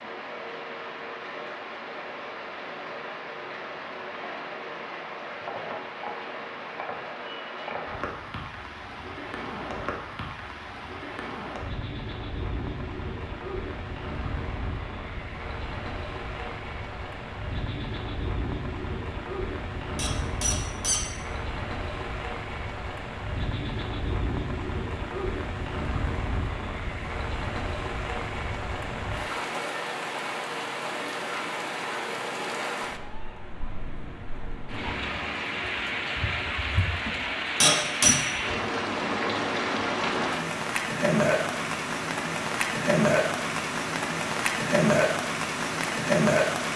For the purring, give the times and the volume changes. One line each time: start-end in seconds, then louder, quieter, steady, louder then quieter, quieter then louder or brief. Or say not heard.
not heard.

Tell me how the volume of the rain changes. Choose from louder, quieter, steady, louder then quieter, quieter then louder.
louder.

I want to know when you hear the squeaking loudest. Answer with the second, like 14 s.
38 s.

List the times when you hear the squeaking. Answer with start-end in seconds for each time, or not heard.
19.9-21.1, 37.6-38.1.